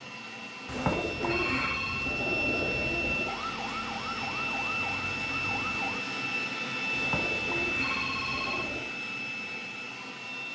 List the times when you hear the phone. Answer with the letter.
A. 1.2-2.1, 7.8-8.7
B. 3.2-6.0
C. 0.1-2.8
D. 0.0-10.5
A.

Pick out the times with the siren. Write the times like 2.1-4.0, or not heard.
3.2-6.0.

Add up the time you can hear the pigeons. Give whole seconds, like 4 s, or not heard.
5 s.